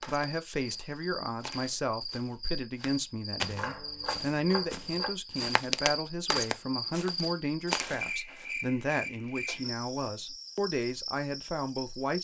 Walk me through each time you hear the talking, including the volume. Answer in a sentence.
You can hear the talking from 0.0 to 12.1 s, at a steady volume.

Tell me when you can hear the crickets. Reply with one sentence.
The crickets can be heard from 0.1 to 12.1 s.